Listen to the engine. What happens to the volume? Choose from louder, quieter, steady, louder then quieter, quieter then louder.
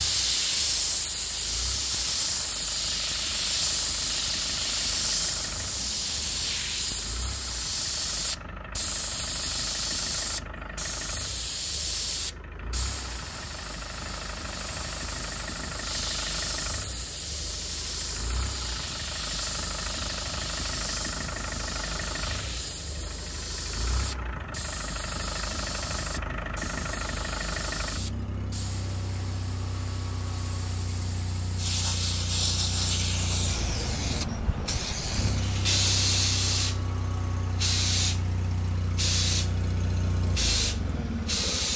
louder.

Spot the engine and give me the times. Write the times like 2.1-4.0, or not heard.
0.0-41.7.